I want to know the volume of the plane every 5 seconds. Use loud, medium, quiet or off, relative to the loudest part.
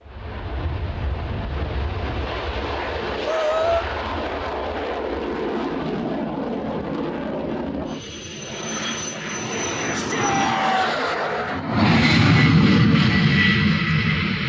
medium, medium, loud.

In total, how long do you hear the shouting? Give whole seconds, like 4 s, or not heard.
2 s.